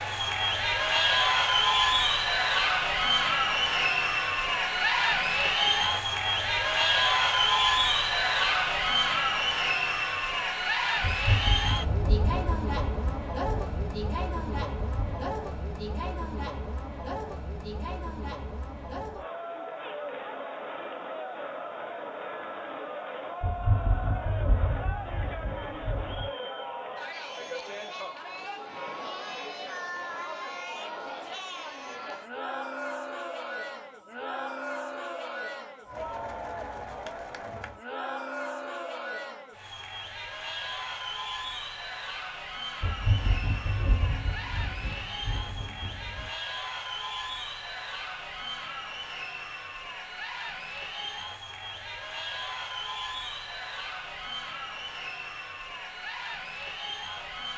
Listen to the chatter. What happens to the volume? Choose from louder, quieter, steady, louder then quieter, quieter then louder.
quieter.